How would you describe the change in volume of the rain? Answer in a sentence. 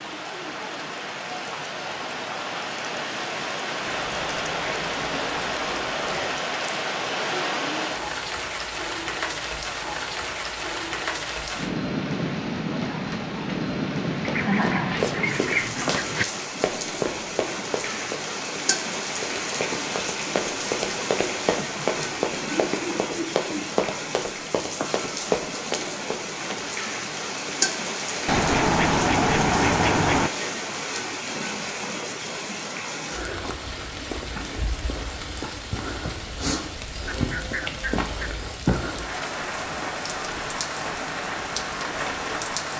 The loudness of the rain stays about the same.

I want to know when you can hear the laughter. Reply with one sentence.
You can hear the laughter from 14.3 to 15.1 s and from 21.6 to 23.6 s.